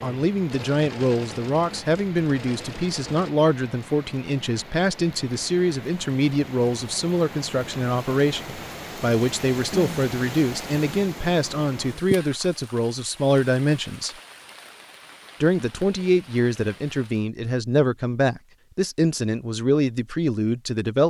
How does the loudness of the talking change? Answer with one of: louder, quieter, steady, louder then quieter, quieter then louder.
steady.